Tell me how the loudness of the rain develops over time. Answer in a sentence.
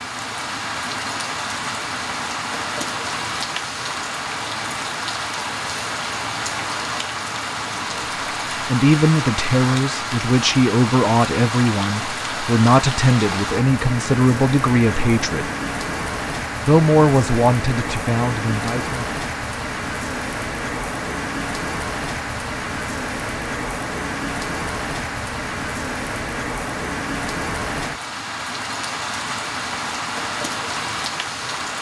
The loudness of the rain stays about the same.